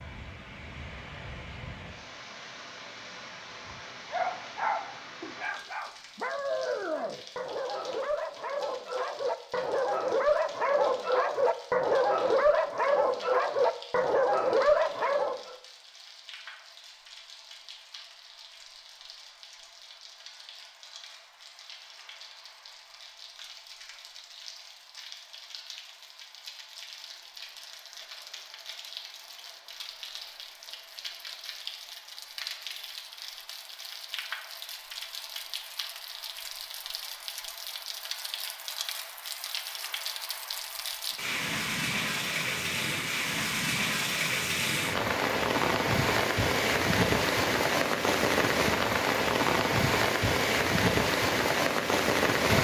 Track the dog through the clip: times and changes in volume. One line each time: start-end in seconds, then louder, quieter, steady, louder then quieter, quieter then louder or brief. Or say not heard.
3.6-15.6 louder.